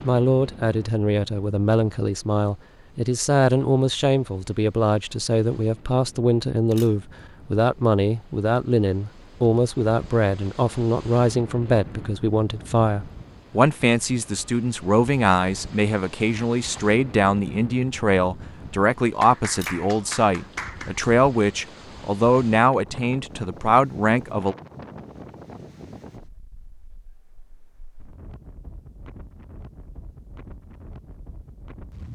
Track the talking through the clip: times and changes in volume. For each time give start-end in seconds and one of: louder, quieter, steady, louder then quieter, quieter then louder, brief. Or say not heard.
0.0-24.6 steady.